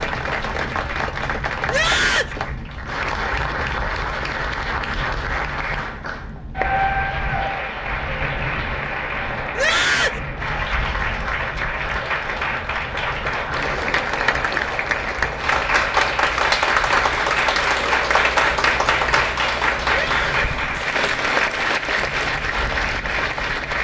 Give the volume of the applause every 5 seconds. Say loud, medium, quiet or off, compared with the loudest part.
medium, medium, medium, loud, loud.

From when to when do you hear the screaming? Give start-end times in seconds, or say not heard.
1.6-2.4, 9.6-10.2, 19.9-20.6.